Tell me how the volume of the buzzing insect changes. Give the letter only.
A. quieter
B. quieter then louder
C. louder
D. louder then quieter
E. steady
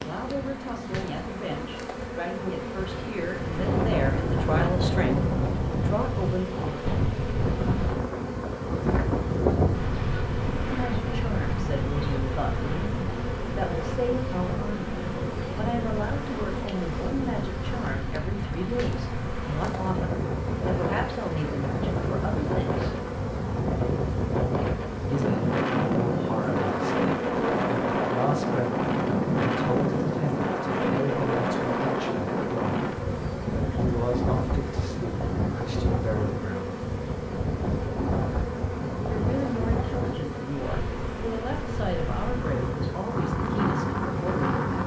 E.